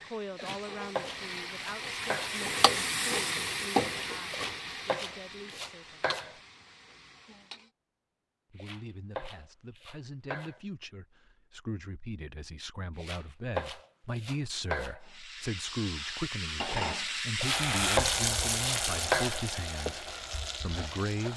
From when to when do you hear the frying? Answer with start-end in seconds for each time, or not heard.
0.0-7.7, 15.0-21.3.